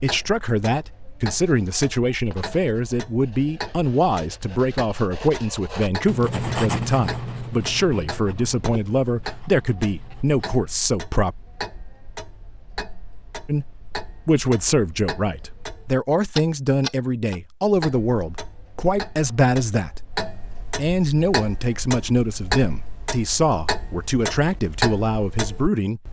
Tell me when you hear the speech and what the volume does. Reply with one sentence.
You can hear the speech from 0.0 to 11.3 s, at a steady volume; and from 13.4 to 26.0 s, at a steady volume.